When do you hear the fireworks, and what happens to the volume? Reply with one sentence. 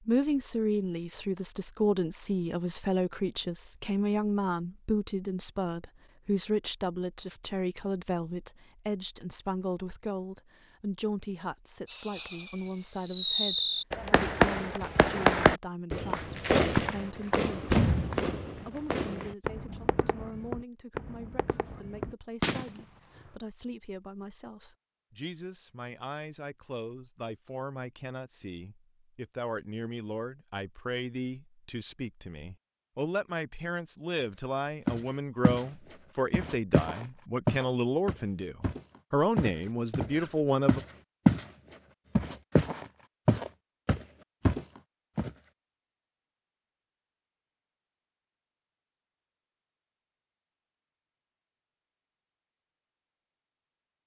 You can hear the fireworks from 11.8 to 22.8 s, getting quieter.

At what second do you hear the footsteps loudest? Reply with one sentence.
The volume of the footsteps peaks at 41 seconds.